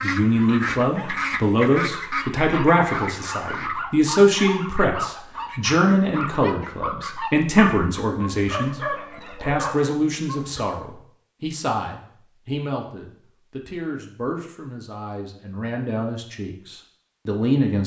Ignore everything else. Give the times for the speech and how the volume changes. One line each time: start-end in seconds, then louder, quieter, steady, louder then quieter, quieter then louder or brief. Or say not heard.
0.0-17.8 quieter.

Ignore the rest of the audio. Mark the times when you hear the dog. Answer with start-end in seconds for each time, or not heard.
0.3-10.7.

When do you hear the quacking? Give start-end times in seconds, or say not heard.
0.0-3.8.